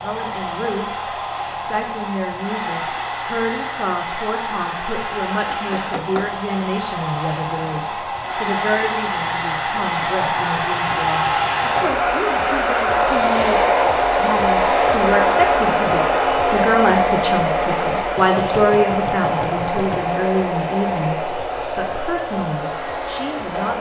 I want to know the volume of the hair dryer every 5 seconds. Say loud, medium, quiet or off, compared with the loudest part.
medium, medium, loud, loud, medium.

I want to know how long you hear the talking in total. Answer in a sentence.
You can hear the talking for 24 seconds altogether.